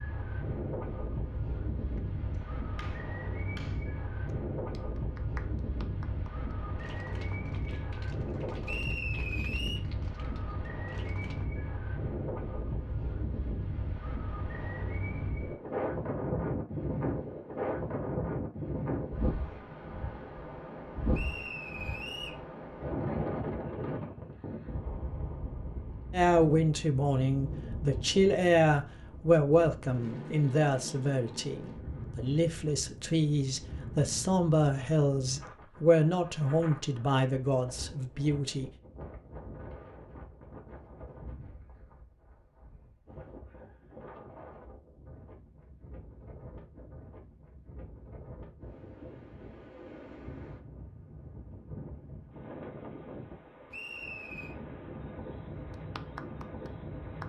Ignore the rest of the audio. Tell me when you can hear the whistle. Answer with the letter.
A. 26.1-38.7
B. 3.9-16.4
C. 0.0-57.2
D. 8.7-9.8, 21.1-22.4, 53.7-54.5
D.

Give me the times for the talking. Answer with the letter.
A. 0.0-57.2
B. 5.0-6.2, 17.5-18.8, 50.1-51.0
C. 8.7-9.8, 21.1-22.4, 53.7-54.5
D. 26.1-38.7
D.